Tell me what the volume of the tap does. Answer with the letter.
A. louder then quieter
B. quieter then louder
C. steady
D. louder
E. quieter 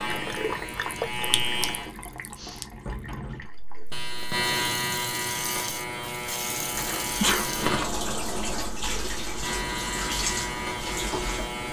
B.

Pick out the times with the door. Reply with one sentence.
The door can be heard from 1.8 to 3.5 s and from 6.7 to 8.8 s.